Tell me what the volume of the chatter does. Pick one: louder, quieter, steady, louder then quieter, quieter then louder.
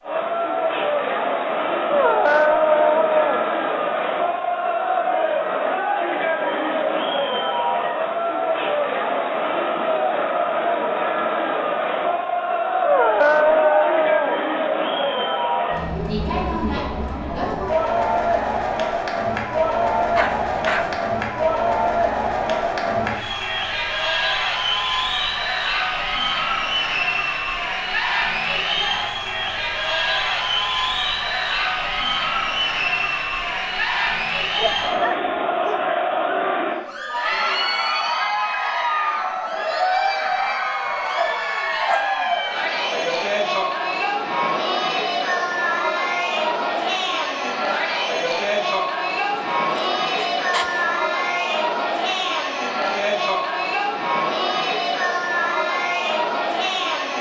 steady.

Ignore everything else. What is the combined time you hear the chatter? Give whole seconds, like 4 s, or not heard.
57 s.